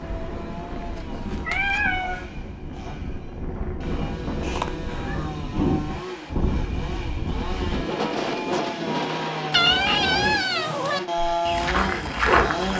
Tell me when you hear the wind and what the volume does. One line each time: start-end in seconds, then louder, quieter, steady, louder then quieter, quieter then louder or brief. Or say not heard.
0.0-10.4 louder.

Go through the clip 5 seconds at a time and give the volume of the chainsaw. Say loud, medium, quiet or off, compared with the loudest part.
quiet, medium, loud.